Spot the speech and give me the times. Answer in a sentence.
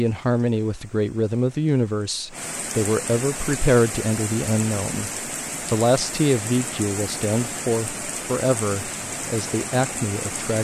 You can hear the speech from 0.0 to 5.1 s and from 5.7 to 10.5 s.